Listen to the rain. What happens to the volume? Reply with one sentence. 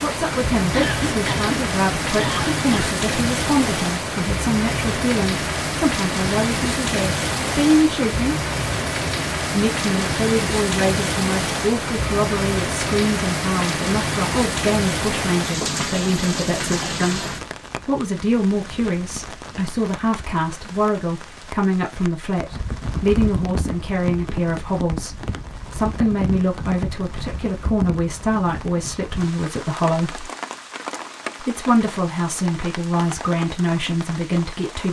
The volume of the rain goes down.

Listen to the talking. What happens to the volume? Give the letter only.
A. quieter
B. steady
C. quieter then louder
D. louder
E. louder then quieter
B.